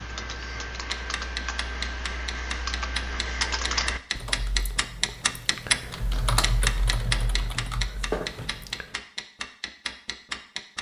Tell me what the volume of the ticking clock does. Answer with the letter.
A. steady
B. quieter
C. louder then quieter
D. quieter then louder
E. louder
C.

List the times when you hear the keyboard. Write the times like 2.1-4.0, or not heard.
0.0-8.9.